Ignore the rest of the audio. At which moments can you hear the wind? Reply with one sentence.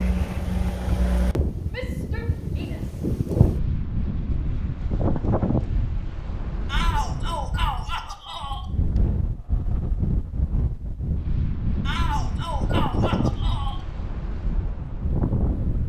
You can hear the wind from 0.0 to 15.8 s.